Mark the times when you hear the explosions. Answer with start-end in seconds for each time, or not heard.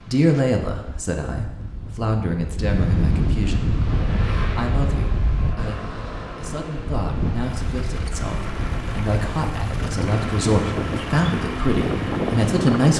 not heard.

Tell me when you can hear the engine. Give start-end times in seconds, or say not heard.
3.6-12.9.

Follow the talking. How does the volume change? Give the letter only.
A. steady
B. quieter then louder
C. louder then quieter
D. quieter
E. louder
B.